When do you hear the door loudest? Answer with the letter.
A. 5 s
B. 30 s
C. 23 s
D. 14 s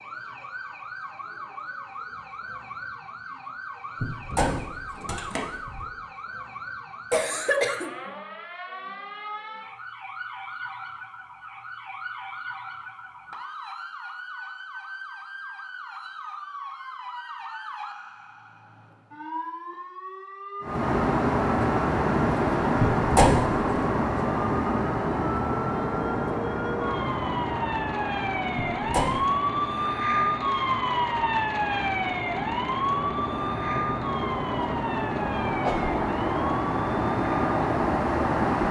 C.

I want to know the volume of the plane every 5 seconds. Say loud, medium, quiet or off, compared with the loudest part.
off, off, off, off, loud, medium, medium, loud.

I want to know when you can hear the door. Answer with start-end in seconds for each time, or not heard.
4.0-5.8, 22.8-23.6, 28.6-29.2.